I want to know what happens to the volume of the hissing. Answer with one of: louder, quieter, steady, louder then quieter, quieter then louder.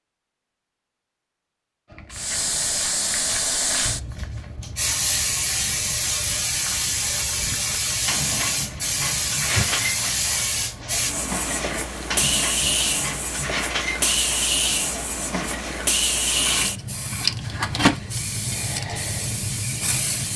steady.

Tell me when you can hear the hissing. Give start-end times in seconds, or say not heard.
2.1-20.3.